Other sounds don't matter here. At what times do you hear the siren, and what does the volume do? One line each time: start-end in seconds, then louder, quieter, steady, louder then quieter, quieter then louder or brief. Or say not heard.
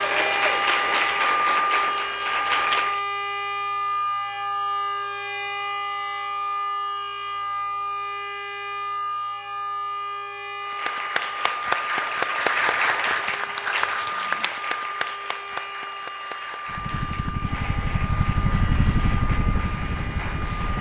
0.0-20.6 quieter.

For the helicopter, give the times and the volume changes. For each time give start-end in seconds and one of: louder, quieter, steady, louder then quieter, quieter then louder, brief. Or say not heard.
16.6-20.7 louder then quieter.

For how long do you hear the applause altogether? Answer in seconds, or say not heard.
13 s.